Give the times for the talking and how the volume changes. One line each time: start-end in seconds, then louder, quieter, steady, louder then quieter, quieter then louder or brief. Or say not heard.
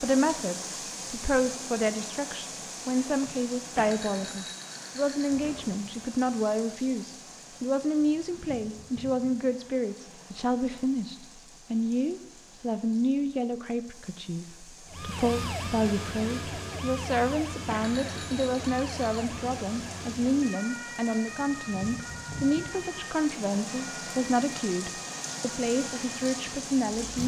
0.0-27.2 steady.